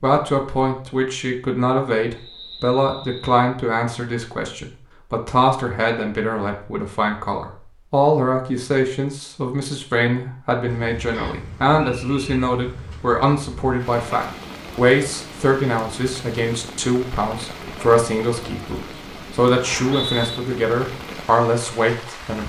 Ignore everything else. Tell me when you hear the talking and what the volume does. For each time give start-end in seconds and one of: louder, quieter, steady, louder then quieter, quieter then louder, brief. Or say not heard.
0.0-22.4 steady.